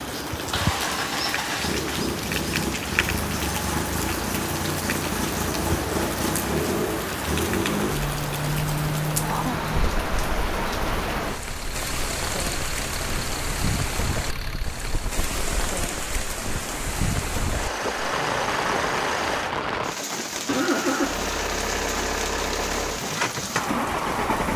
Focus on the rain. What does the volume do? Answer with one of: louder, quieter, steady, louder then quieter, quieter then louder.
steady.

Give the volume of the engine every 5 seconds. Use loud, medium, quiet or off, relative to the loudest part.
loud, loud, medium, loud, loud.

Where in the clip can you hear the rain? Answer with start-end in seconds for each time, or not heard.
0.0-24.5.